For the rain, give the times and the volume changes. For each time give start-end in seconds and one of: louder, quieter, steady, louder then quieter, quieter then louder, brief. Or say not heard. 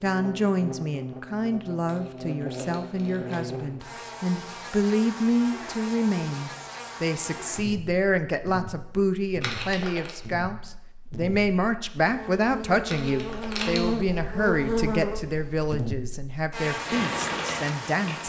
not heard.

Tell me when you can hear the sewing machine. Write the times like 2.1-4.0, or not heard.
16.7-18.2.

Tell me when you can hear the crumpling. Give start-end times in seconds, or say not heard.
1.9-3.5, 9.4-10.2, 12.8-13.9.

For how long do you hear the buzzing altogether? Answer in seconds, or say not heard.
18 s.